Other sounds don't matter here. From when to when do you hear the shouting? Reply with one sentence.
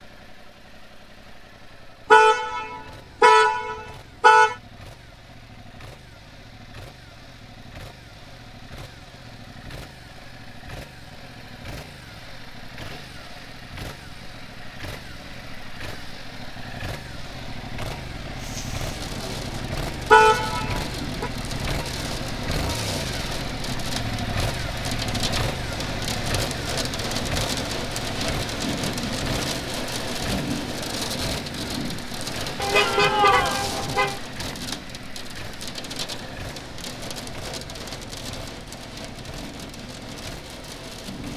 You can hear the shouting from 32.7 to 33.6 s.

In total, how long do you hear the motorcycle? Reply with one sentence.
You can hear the motorcycle for 41 seconds altogether.